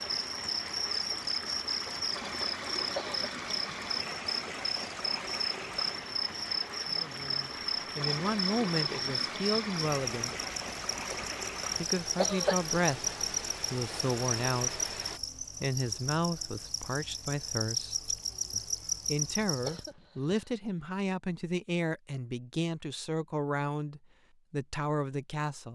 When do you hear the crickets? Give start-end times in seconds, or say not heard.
0.0-19.9.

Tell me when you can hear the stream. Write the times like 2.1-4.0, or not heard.
0.0-15.2.